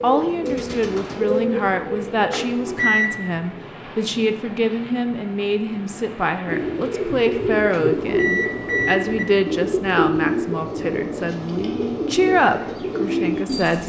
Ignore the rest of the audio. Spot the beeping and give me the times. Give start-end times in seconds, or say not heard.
2.3-3.1, 7.7-9.2.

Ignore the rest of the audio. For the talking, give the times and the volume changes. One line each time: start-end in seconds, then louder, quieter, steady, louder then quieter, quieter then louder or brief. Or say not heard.
0.0-13.8 steady.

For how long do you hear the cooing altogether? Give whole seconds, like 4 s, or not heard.
10 s.